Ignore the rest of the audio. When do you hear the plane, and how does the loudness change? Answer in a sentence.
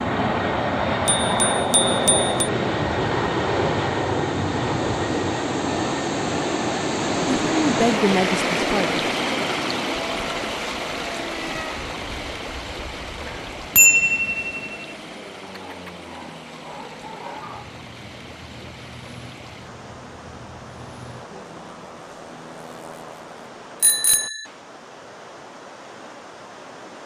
You can hear the plane from 0.0 to 23.5 s, getting quieter.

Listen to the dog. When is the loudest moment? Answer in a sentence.
The volume of the dog peaks at 17 seconds.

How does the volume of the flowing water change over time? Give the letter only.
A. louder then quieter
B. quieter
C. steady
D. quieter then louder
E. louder
A.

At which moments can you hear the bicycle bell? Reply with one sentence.
You can hear the bicycle bell from 1.1 to 2.3 s, from 13.2 to 14.8 s and from 23.8 to 24.4 s.